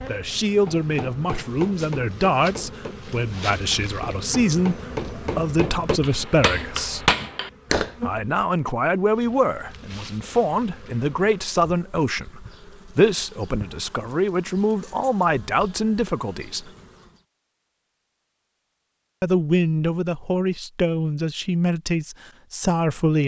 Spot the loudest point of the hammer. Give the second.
7 s.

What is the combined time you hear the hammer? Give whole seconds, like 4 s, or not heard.
7 s.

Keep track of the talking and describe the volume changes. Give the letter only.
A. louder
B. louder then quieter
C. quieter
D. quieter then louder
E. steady
E.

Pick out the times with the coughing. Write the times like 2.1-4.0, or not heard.
not heard.